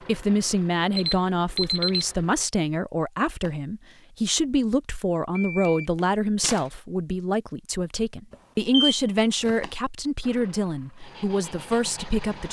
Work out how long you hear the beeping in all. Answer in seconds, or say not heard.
4 s.